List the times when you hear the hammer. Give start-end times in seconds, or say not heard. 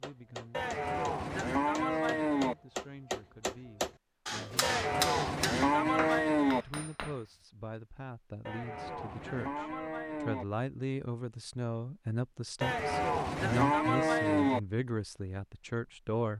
0.0-7.2.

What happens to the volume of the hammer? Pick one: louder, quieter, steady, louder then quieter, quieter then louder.
louder then quieter.